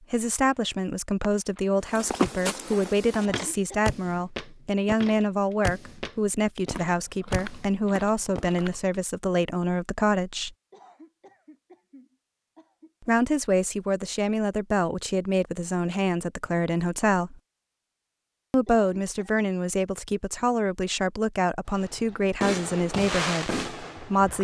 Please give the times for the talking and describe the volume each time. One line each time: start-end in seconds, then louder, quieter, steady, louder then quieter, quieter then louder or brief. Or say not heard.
0.1-10.6 steady
13.1-17.4 steady
18.5-24.3 steady.